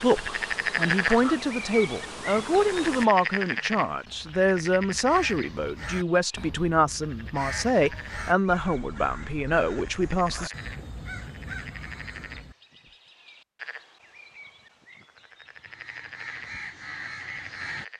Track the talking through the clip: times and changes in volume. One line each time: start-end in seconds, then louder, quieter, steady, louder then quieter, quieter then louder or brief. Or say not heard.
0.0-10.5 steady.